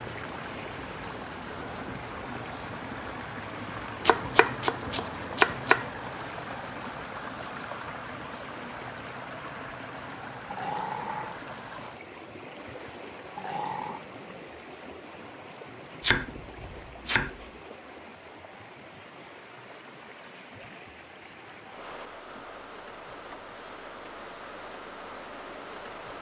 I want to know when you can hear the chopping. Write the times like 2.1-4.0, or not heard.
4.0-5.9, 16.0-17.4.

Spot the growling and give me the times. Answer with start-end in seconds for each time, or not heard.
10.4-11.3, 13.3-14.0.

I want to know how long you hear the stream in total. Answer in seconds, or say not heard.
26 s.